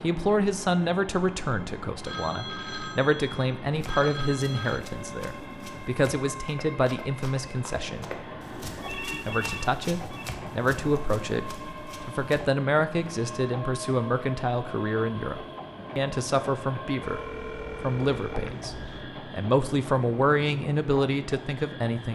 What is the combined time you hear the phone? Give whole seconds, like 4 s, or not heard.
6 s.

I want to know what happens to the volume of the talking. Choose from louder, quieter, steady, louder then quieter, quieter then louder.
steady.